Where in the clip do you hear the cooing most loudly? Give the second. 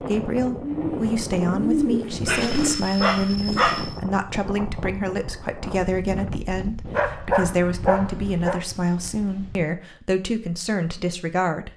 2 s.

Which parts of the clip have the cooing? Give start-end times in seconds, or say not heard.
0.0-2.7.